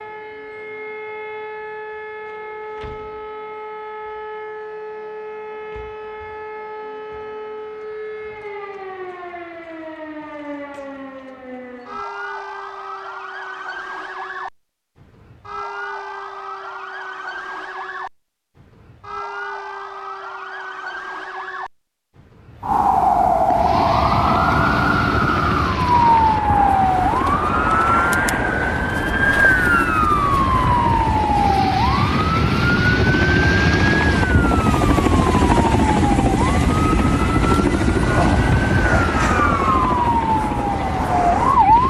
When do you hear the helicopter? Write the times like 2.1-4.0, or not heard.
23.4-41.8.